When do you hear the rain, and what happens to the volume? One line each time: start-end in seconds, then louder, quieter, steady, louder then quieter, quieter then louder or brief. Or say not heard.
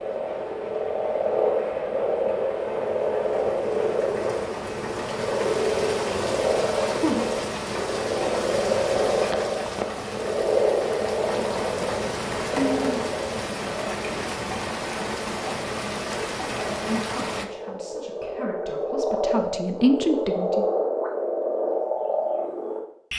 0.0-17.4 louder.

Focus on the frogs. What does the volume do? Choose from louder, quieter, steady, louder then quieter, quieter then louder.
quieter then louder.